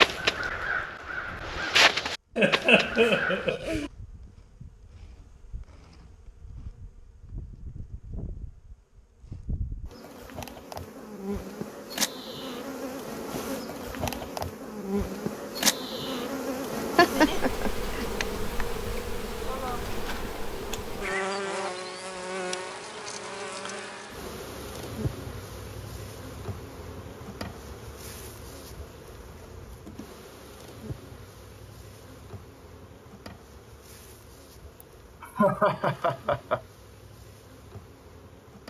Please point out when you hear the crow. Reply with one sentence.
The crow can be heard from 0.0 to 3.5 s.